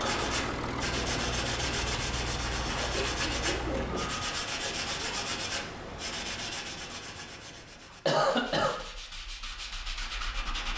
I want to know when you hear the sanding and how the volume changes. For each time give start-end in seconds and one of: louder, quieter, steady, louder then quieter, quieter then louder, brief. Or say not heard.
0.0-10.7 quieter.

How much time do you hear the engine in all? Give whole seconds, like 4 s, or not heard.
4 s.